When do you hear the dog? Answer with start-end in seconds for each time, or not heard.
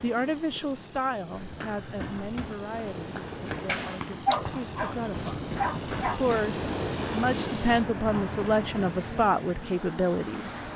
4.2-6.4.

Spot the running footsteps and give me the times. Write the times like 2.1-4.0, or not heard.
1.3-8.7.